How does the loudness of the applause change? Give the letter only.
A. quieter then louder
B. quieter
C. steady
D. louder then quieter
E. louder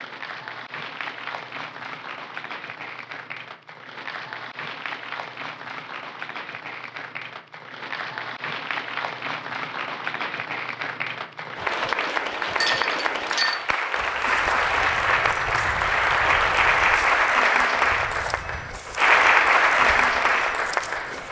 E.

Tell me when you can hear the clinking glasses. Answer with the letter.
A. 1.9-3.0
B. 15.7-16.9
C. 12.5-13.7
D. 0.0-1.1
C.